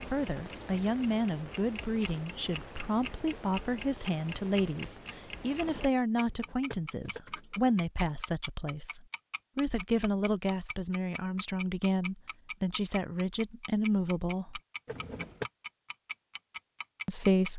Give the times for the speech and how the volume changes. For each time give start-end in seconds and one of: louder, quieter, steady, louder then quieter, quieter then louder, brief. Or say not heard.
0.1-14.6 steady
17.1-17.5 brief.